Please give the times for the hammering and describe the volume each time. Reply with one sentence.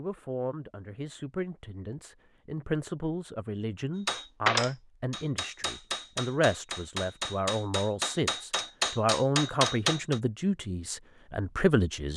You can hear the hammering from 4.0 to 10.2 s, getting quieter then louder.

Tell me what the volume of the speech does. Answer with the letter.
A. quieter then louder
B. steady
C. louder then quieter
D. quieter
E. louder
E.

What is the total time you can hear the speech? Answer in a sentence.
You can hear the speech for 12 seconds altogether.